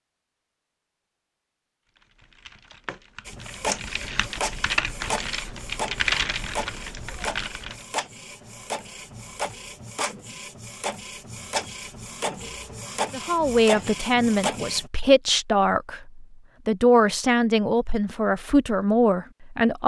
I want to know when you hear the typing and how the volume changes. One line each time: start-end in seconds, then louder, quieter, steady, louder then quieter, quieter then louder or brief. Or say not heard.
1.9-7.8 louder then quieter.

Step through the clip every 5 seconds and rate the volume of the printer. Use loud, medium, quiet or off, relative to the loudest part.
loud, loud, loud, off.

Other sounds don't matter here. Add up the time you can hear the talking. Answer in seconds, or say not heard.
7 s.